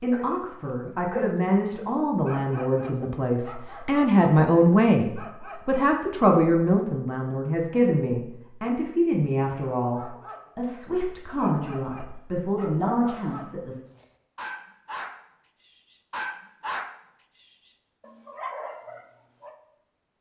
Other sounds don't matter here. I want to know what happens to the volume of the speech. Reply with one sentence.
The volume of the speech goes up, then down.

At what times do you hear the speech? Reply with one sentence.
You can hear the speech from 0.0 to 13.8 s.